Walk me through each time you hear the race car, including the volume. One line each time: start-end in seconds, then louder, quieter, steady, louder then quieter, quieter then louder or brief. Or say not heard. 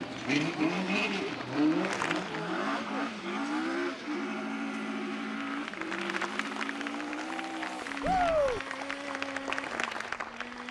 0.0-10.6 quieter.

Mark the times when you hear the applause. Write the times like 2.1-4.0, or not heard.
0.0-2.5, 5.3-10.6.